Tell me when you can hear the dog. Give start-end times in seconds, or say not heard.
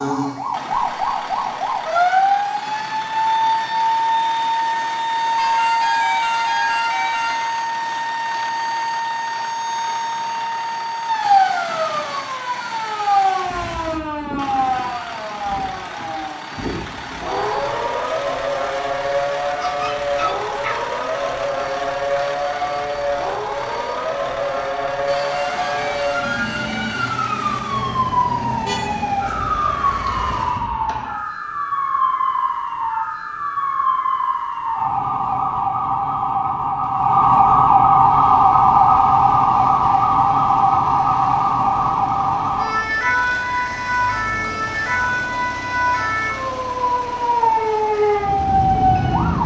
19.6-21.2.